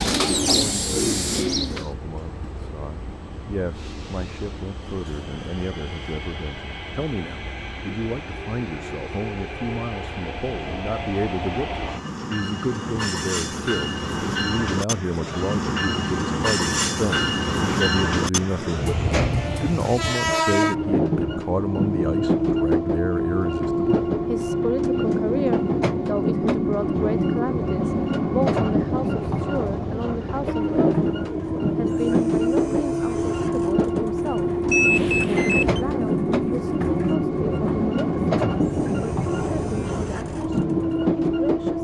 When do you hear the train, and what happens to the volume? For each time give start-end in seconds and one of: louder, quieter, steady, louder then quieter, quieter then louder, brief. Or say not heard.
0.0-41.7 louder.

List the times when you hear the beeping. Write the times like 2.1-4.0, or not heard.
34.7-35.8.